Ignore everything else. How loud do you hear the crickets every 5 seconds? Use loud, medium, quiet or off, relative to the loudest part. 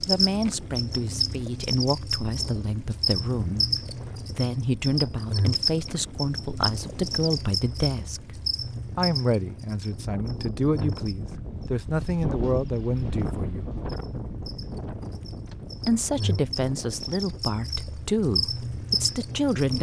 loud, loud, quiet, loud.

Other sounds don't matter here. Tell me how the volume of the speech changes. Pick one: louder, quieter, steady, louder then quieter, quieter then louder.
steady.